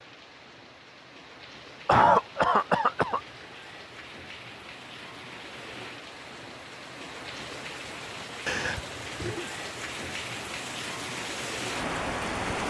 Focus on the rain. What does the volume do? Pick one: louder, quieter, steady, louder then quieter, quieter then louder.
louder.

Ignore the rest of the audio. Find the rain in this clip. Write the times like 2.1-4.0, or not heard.
0.0-12.6.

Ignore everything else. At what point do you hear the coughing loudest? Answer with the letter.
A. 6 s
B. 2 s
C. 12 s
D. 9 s
B.